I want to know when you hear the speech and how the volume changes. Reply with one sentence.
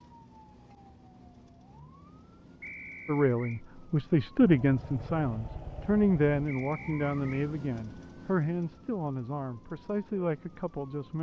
You can hear the speech from 3.0 to 11.1 s, getting quieter.